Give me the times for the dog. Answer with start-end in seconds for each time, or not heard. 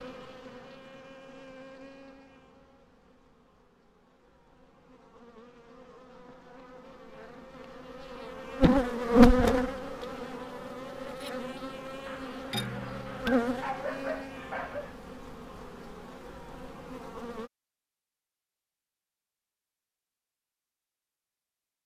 12.1-14.9.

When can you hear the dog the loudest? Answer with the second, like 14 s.
14 s.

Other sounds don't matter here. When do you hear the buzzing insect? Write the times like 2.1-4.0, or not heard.
0.0-17.5.